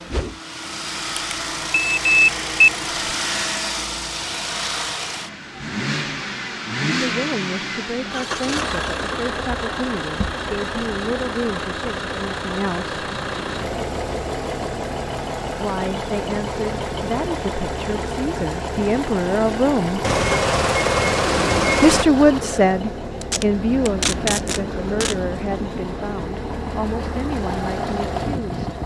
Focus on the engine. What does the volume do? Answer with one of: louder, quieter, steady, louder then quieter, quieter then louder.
steady.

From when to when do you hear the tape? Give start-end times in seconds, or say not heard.
23.2-25.1.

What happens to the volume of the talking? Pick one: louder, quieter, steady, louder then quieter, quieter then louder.
louder then quieter.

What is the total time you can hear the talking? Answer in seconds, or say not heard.
17 s.